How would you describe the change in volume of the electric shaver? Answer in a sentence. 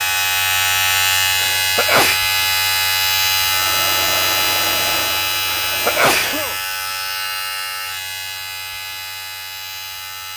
The loudness of the electric shaver goes down.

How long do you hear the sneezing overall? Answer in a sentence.
You can hear the sneezing for 2 seconds altogether.